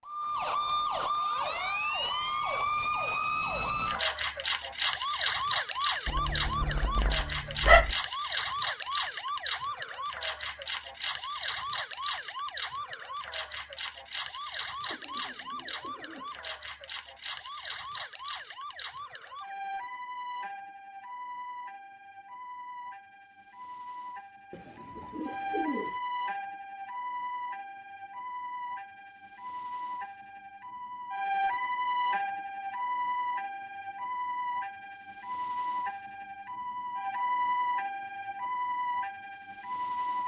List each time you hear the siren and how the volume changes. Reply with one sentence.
You can hear the siren from 0.1 to 40.2 s, getting quieter then louder.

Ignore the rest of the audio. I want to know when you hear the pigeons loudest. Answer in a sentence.
The volume of the pigeons peaks at 26 seconds.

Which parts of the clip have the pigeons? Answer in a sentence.
You can hear the pigeons from 14.8 to 16.6 s and from 24.5 to 26.0 s.